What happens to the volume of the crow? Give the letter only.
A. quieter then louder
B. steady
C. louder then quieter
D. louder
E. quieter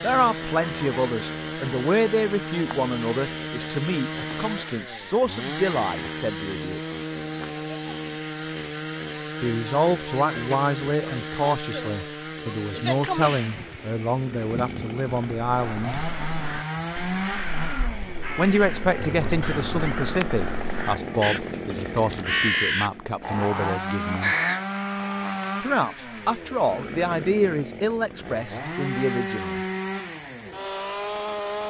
D.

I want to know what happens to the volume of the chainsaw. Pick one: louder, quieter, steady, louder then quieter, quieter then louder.
steady.